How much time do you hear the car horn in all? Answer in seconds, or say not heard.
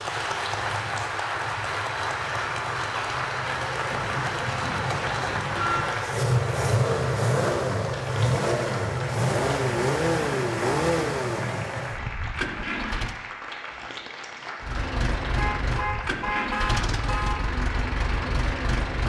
4 s.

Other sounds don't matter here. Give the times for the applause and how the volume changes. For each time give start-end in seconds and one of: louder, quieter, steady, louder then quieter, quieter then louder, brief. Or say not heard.
0.0-19.0 quieter.